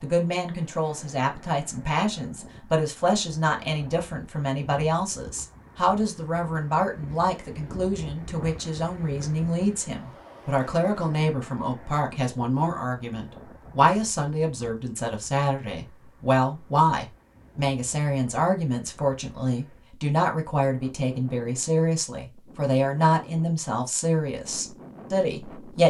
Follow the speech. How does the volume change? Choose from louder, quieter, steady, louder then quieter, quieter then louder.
steady.